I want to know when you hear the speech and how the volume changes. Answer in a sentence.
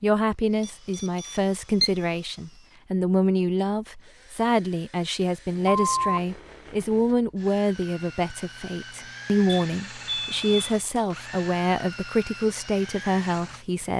The speech can be heard from 0.0 to 13.9 s, at a steady volume.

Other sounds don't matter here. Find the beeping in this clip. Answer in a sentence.
The beeping can be heard from 0.6 to 1.9 s, from 5.7 to 6.2 s and from 9.4 to 11.1 s.